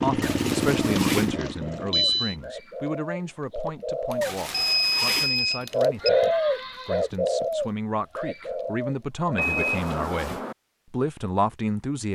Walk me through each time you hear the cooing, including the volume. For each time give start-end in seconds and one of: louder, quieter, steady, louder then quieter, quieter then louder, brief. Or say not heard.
0.2-9.6 louder then quieter.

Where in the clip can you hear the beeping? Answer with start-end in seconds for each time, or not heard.
0.9-2.4, 4.1-6.1, 9.3-10.6.